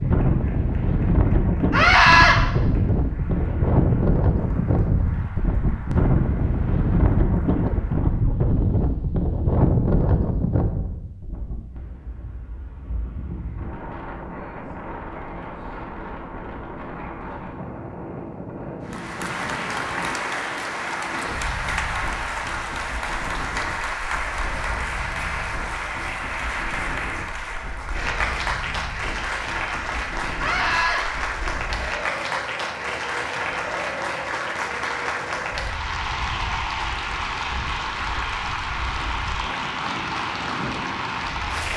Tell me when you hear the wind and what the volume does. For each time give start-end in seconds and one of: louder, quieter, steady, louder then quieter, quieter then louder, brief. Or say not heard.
0.0-41.7 quieter.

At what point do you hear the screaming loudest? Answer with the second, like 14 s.
2 s.